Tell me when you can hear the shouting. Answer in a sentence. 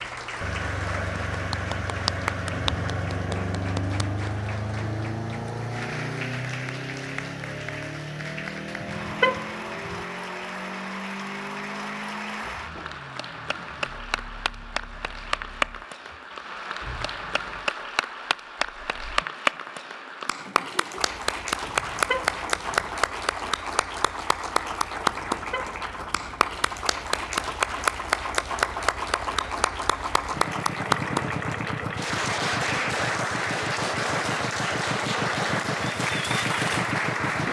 The shouting can't be heard in this clip.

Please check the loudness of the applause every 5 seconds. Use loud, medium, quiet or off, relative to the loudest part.
medium, medium, medium, loud, loud, loud, loud, loud.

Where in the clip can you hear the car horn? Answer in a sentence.
You can hear the car horn from 8.8 to 10.1 s, from 21.6 to 22.9 s and from 25.1 to 26.4 s.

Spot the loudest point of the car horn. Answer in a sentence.
The volume of the car horn peaks at 9 seconds.